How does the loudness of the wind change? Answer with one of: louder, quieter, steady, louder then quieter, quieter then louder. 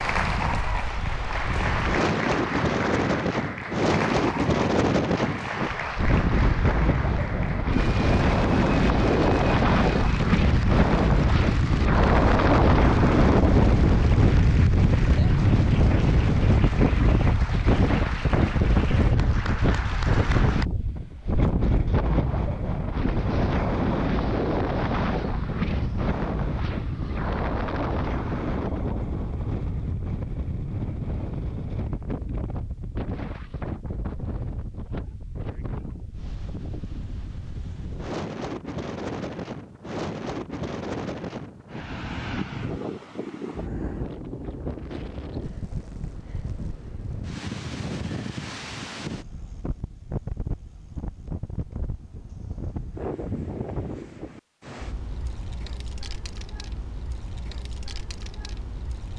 quieter.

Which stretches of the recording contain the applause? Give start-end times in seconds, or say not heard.
0.0-20.6.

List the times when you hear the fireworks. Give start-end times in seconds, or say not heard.
not heard.